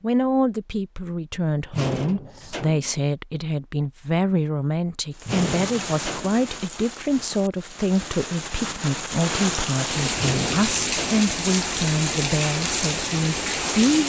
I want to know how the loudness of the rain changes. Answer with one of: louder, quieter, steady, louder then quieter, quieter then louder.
louder.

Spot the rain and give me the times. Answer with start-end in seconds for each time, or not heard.
5.1-14.0.